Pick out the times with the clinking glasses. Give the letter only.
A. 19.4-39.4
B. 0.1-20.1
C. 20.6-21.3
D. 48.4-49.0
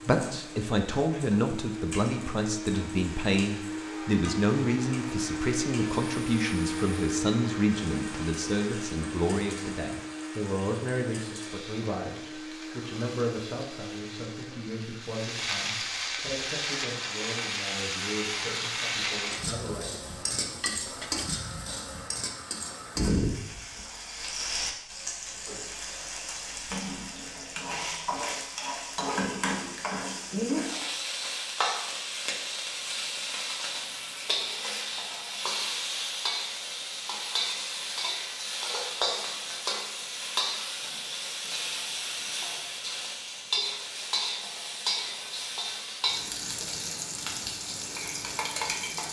C.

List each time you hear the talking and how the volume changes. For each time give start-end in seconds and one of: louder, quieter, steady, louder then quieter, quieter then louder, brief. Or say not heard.
0.1-20.1 quieter.